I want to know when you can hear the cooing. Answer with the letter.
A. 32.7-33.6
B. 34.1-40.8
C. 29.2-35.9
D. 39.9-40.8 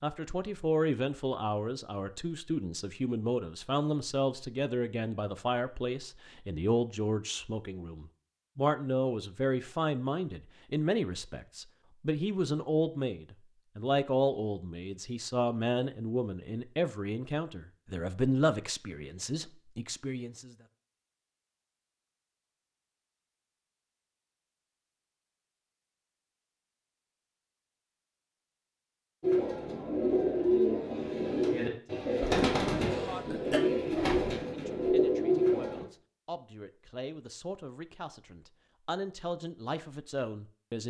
C.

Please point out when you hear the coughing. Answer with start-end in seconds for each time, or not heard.
32.7-33.6.